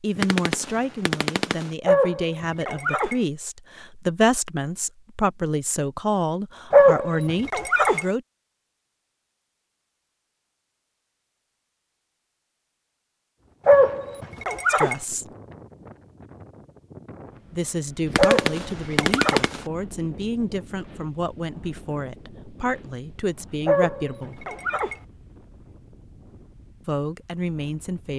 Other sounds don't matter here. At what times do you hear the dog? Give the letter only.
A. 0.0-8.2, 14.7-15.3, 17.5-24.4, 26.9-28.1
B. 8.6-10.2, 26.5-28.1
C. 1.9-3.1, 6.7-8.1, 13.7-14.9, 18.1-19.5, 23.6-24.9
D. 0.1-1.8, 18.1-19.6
C.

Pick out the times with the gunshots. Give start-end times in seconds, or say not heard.
0.1-1.8, 18.1-19.6.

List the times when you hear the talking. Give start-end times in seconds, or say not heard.
0.0-8.2, 14.7-15.3, 17.5-24.4, 26.9-28.1.